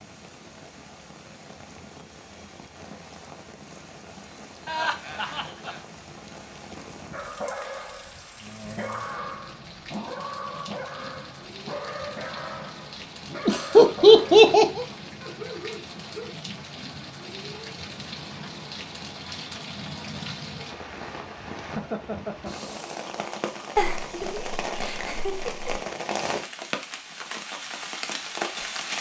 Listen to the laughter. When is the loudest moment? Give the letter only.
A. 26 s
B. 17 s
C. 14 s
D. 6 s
C.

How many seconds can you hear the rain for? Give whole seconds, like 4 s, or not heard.
29 s.